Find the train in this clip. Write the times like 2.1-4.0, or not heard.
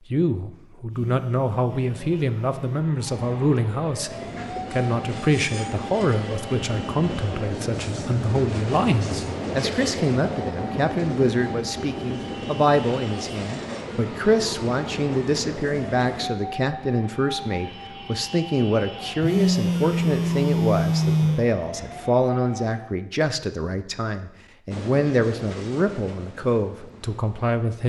4.1-16.3, 24.7-27.6.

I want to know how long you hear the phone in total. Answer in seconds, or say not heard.
4 s.